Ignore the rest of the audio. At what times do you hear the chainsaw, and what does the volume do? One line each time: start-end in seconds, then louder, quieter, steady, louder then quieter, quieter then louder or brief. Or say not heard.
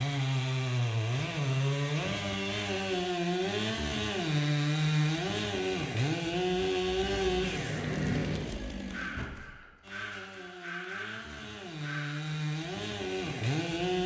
0.0-14.0 quieter then louder.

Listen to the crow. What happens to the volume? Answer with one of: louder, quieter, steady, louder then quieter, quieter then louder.
quieter.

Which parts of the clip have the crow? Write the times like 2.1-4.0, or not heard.
7.0-12.3.